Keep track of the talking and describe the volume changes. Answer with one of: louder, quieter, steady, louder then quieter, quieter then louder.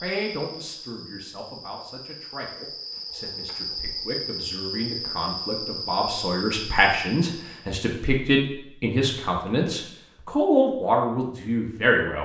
louder.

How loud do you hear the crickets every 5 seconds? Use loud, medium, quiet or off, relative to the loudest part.
loud, loud, off.